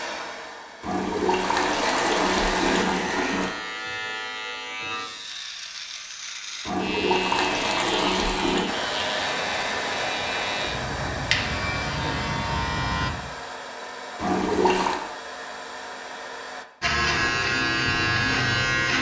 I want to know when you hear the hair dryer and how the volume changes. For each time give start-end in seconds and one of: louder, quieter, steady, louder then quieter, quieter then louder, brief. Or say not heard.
0.0-2.9 brief
8.7-16.6 quieter.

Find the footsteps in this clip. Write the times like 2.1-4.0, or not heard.
not heard.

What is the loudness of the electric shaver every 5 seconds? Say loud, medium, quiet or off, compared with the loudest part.
medium, medium, medium, loud.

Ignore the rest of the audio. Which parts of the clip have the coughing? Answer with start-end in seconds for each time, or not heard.
not heard.